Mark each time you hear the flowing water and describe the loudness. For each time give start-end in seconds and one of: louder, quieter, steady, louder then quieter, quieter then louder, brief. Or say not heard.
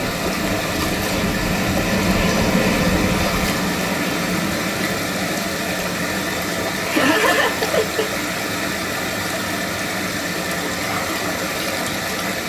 0.0-12.4 steady.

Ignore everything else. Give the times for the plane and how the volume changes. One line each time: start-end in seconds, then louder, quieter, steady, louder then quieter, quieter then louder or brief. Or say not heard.
0.0-12.4 quieter.